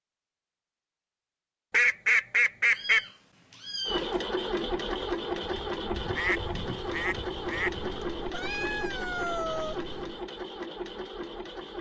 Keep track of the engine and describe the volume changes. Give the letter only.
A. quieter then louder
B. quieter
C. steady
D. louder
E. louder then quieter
B.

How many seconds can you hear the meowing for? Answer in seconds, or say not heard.
4 s.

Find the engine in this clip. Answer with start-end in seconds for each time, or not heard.
3.9-11.7.